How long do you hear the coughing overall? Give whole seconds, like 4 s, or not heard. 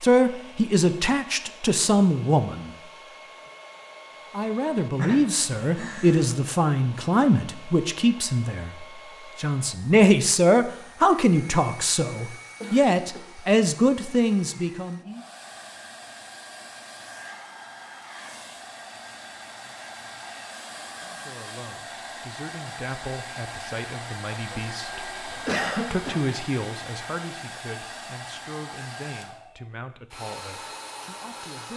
4 s.